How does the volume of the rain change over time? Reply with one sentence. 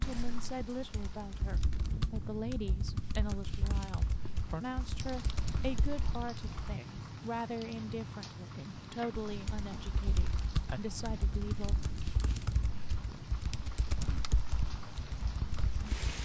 The loudness of the rain stays about the same.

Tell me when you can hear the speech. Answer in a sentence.
You can hear the speech from 0.0 to 11.8 s.